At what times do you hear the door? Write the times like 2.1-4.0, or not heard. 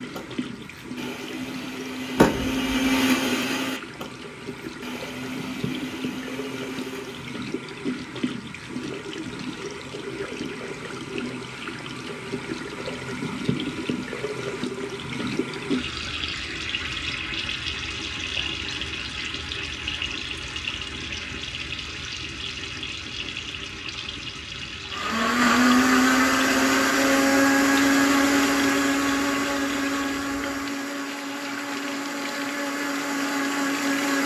2.1-2.8.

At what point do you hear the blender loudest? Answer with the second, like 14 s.
26 s.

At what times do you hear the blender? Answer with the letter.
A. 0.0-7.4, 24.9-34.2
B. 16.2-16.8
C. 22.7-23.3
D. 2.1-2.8
A.